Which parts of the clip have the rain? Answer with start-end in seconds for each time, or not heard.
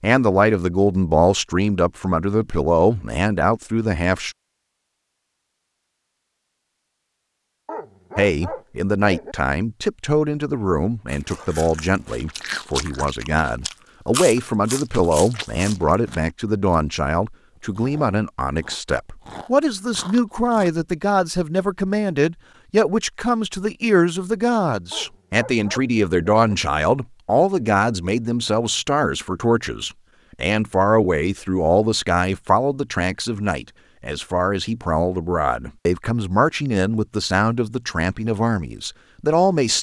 not heard.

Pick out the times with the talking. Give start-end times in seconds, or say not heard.
0.0-4.3, 8.2-39.7.